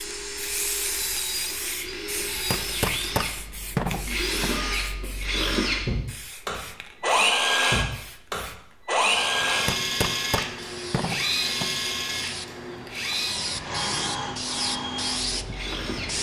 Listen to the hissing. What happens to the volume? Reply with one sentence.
The volume of the hissing goes down, then up.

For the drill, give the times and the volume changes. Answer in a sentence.
The drill can be heard from 0.0 to 16.1 s, getting louder then quieter.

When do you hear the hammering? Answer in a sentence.
You can hear the hammering from 2.5 to 4.5 s and from 9.7 to 11.7 s.